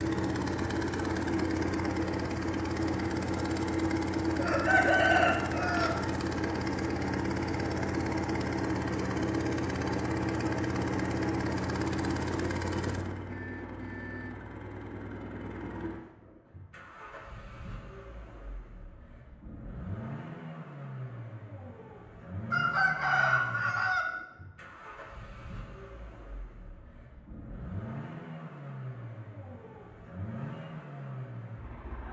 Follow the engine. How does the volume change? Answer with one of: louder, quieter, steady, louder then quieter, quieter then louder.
quieter.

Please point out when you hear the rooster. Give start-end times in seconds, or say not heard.
4.3-5.9, 22.5-24.1.